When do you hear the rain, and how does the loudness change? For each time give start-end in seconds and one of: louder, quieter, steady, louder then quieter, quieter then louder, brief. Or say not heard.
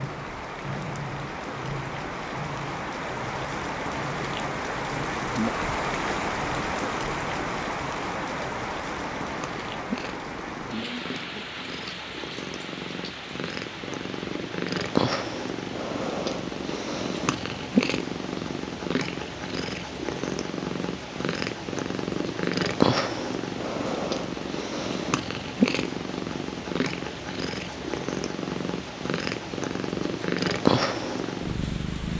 0.0-32.1 quieter.